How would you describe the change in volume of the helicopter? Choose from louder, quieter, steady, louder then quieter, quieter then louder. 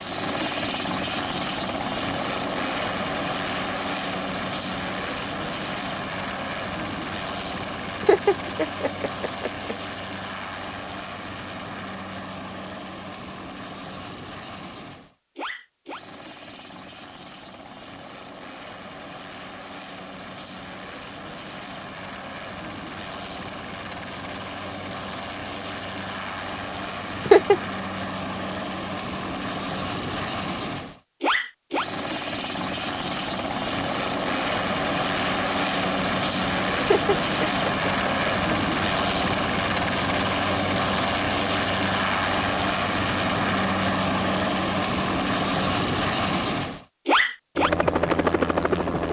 quieter then louder.